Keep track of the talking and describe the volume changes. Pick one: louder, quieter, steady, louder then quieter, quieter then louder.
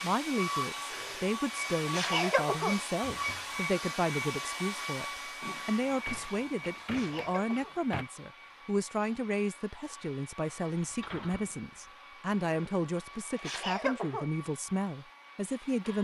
steady.